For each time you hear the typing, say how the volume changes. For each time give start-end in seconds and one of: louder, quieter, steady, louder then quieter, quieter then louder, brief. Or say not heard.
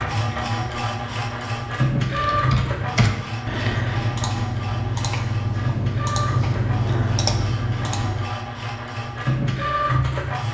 2.1-8.3 steady.